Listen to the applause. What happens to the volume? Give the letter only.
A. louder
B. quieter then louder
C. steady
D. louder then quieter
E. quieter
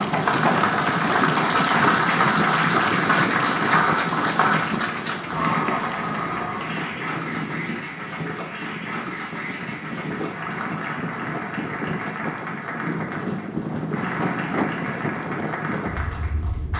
E.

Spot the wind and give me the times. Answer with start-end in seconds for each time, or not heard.
0.0-16.7.